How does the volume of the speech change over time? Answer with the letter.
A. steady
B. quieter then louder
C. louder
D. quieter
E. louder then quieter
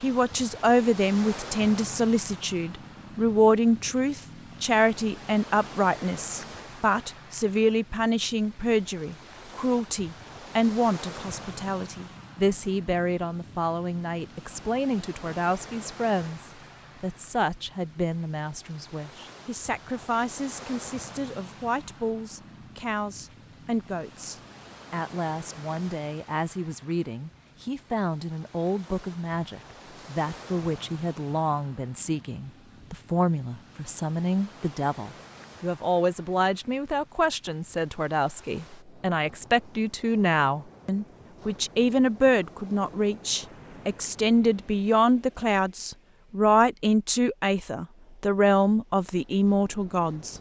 B.